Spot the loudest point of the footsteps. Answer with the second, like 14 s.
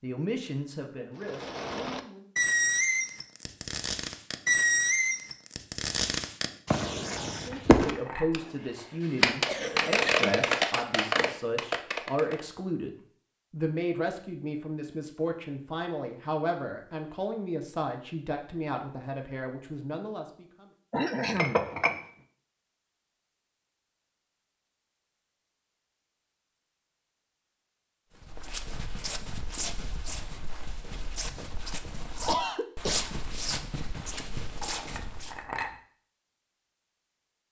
33 s.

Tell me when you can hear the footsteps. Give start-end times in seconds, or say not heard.
28.1-35.5.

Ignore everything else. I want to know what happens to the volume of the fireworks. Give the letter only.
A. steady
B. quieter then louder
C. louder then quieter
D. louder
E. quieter
A.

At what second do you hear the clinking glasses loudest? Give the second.
22 s.